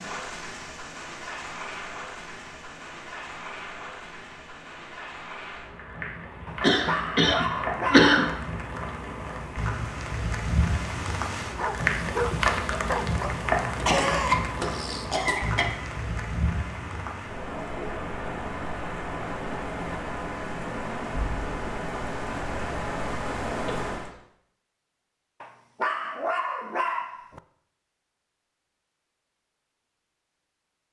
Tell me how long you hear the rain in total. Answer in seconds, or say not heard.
24 s.